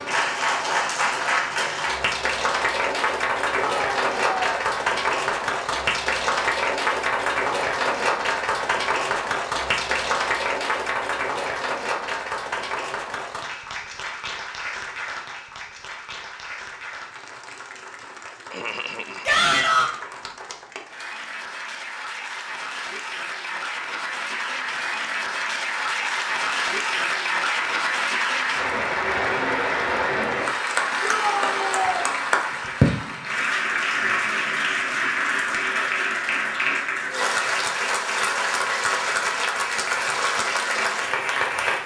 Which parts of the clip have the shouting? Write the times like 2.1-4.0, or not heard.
3.6-4.6, 19.2-19.9, 31.0-32.0.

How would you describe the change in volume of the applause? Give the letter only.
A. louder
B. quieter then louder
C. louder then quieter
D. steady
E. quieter
B.